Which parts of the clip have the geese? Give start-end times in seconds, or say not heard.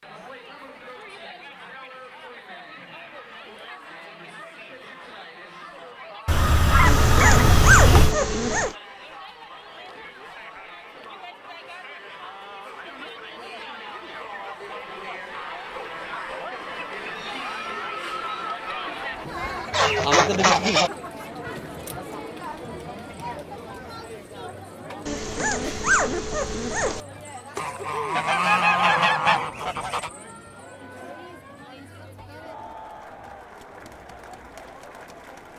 6.2-8.2, 19.7-20.9, 27.6-30.1.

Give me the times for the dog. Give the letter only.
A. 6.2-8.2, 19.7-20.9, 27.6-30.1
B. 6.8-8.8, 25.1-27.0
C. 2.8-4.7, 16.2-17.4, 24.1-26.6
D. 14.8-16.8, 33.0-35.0
B.